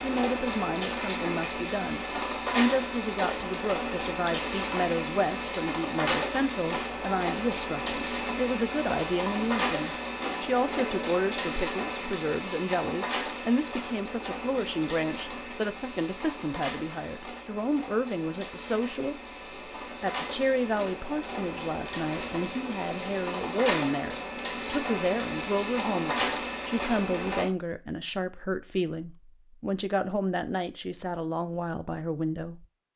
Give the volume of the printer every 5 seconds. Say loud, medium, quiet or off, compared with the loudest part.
loud, loud, loud, medium, loud, loud, off.